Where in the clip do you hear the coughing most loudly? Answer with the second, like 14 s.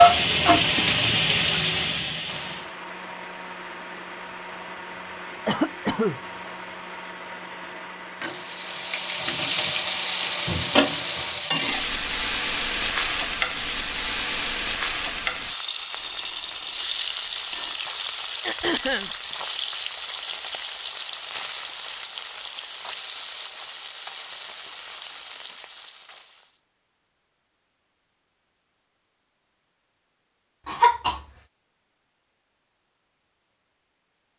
31 s.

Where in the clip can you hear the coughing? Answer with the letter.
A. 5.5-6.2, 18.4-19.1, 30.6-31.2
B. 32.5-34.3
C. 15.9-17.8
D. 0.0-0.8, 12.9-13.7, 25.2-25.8
A.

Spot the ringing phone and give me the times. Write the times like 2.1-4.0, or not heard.
15.9-17.8.